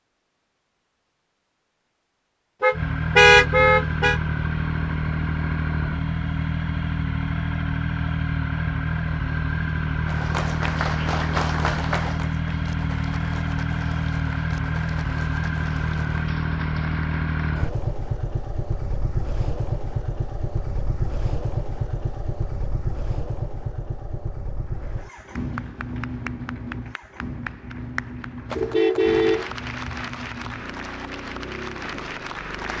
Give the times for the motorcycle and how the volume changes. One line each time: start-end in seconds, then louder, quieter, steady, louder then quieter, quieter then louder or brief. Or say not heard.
2.7-32.7 quieter.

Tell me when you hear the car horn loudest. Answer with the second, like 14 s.
3 s.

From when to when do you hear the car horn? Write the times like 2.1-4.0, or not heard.
2.6-4.2, 28.5-30.1.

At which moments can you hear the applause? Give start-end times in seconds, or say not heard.
10.1-17.6, 24.6-32.7.